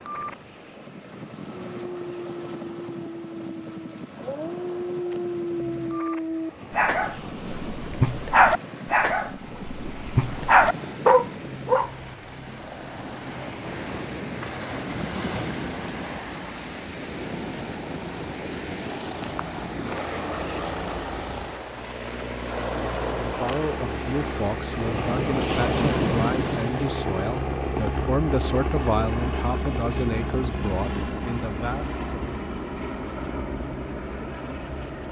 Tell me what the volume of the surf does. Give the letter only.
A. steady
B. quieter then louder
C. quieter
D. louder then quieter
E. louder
E.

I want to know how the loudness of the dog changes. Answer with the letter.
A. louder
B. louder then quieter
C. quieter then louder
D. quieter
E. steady
A.